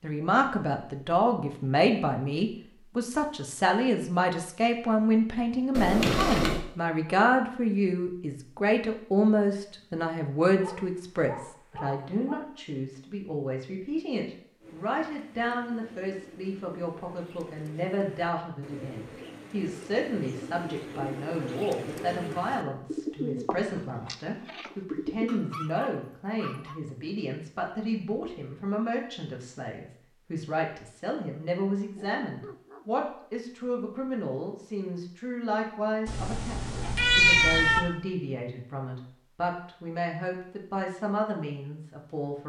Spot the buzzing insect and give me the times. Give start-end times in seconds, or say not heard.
not heard.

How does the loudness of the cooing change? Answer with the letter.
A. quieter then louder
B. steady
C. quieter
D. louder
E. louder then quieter
D.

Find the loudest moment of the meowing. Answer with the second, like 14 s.
37 s.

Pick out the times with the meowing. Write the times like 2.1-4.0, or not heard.
5.8-6.6, 36.0-37.8.